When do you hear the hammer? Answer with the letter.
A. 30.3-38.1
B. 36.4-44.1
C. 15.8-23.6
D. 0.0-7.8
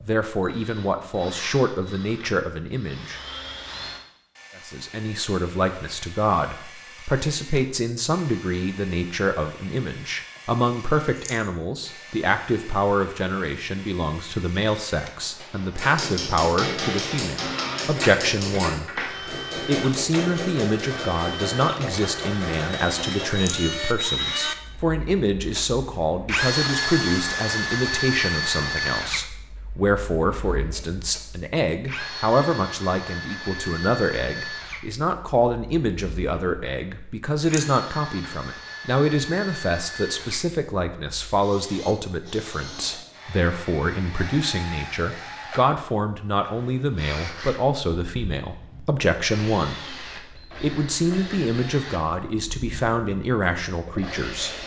C.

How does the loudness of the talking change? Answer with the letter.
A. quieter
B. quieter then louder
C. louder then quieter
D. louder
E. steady
E.